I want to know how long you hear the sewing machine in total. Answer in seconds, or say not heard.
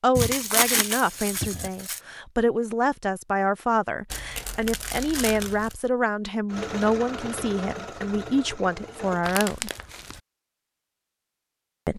3 s.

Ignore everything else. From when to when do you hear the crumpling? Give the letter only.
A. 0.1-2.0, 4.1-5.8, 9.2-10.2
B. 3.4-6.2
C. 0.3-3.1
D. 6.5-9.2
A.